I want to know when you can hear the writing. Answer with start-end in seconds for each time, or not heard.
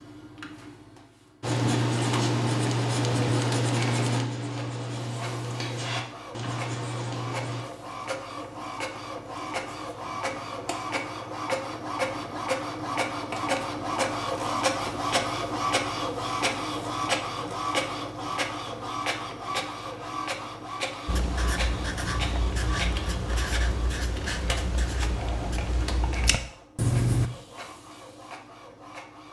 1.4-7.7, 21.1-27.3.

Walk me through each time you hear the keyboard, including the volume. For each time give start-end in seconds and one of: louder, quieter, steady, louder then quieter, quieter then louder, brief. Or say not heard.
not heard.